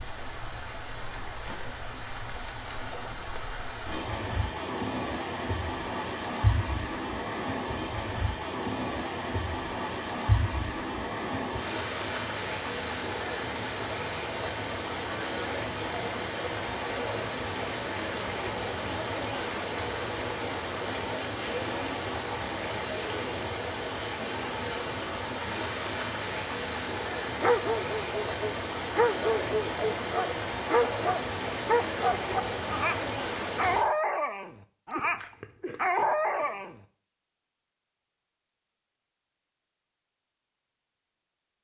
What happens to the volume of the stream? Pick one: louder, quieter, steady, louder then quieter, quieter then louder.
steady.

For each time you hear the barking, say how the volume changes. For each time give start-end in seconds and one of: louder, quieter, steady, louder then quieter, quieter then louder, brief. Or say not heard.
27.4-36.8 steady.